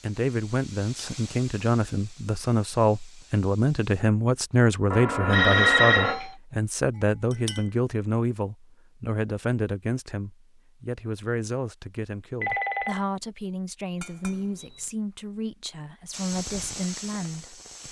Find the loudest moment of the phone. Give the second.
6 s.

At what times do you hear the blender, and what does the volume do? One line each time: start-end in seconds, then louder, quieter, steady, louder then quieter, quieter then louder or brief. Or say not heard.
not heard.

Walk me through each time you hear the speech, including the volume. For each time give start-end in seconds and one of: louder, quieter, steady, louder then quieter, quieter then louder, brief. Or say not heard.
0.0-17.8 quieter.